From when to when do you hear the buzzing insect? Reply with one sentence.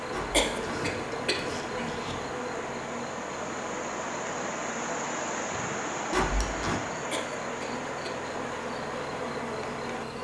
You can hear the buzzing insect from 0.0 to 10.1 s.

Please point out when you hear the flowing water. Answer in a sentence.
The flowing water can be heard from 0.0 to 10.1 s.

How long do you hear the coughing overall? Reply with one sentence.
The coughing can be heard for 3 seconds in total.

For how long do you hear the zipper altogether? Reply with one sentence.
The zipper can be heard for 3 seconds in total.